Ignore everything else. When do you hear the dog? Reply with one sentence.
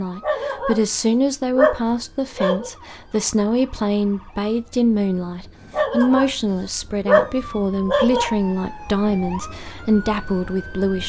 You can hear the dog from 0.2 to 0.8 s, from 1.6 to 2.7 s, from 5.7 to 6.3 s and from 7.0 to 8.3 s.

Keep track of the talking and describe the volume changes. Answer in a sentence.
The volume of the talking stays about the same.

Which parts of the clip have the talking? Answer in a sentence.
You can hear the talking from 0.0 to 11.0 s.